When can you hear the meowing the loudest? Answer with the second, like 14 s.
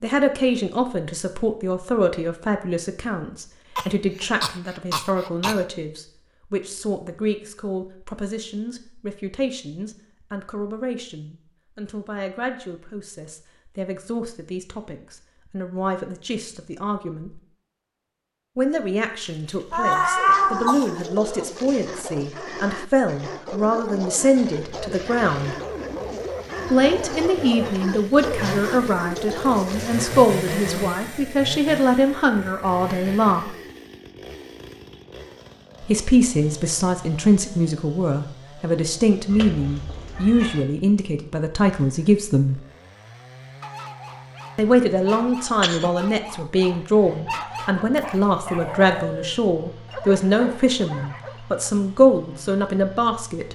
20 s.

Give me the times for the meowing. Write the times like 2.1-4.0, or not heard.
19.7-20.8, 39.3-40.6.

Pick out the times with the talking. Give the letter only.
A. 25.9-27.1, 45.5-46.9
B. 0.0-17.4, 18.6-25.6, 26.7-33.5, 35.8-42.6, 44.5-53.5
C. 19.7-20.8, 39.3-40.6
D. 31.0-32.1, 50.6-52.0
B.